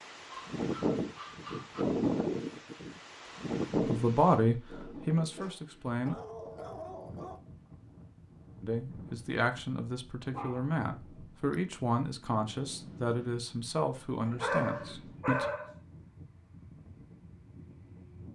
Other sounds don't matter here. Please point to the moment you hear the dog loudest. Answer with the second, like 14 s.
15 s.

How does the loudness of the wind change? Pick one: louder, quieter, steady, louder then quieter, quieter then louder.
quieter.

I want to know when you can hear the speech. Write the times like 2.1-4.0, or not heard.
3.7-6.2, 8.6-15.4.